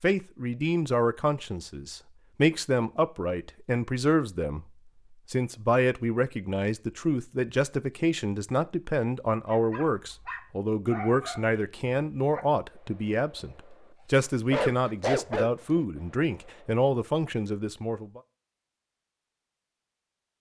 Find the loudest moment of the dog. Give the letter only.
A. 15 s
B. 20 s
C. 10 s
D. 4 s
A.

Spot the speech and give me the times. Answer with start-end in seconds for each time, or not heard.
0.0-4.7, 5.3-18.2.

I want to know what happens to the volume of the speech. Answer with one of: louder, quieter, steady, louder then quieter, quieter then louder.
steady.